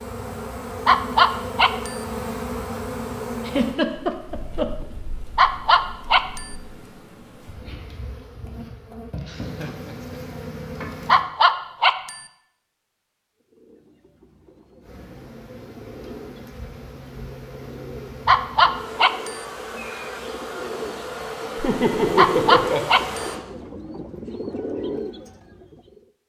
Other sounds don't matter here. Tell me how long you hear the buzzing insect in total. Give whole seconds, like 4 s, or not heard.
20 s.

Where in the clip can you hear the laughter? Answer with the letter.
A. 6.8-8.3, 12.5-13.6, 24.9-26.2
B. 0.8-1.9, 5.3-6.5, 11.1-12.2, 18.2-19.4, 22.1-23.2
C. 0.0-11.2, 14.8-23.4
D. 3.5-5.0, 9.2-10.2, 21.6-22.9
D.